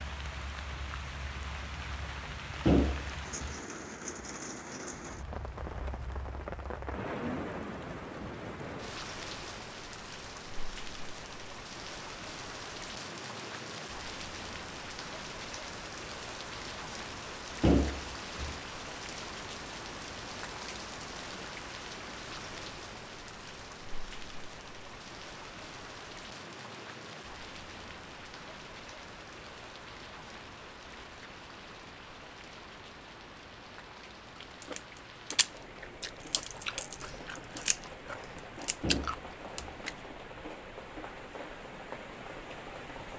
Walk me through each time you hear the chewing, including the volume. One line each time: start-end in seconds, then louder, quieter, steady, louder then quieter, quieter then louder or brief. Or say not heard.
34.4-40.0 quieter then louder.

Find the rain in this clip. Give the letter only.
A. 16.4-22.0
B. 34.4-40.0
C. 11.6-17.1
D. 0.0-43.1
D.